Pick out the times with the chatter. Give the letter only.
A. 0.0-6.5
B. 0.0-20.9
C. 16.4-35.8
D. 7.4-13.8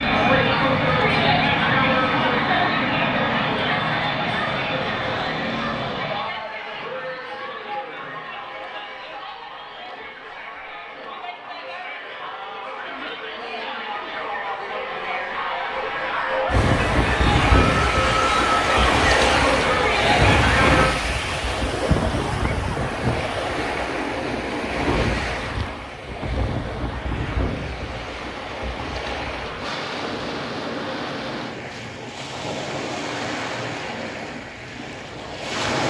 B.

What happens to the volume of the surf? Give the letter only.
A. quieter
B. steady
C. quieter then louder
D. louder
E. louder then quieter
A.